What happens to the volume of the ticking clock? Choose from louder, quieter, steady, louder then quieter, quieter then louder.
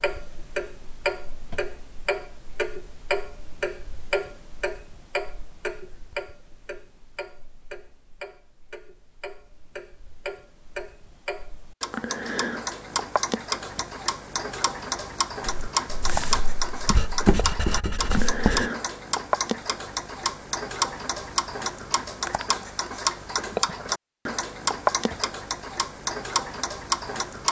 quieter then louder.